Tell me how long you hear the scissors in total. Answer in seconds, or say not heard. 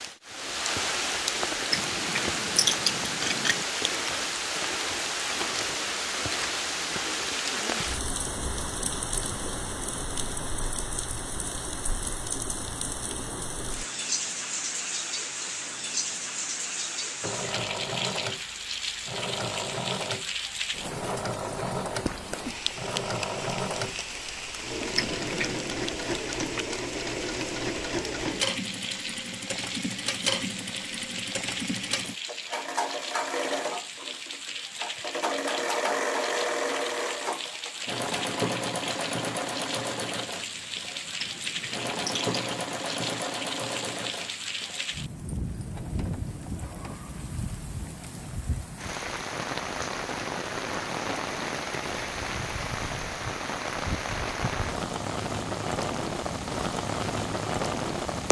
4 s.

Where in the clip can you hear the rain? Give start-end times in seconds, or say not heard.
0.0-58.2.